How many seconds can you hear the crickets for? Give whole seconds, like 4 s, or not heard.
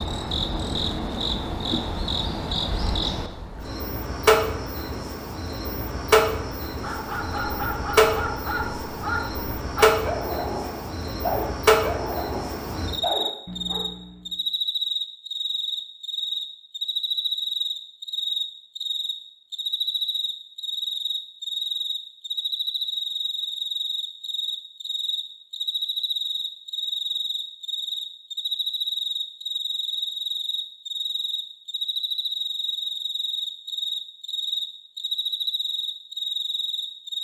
37 s.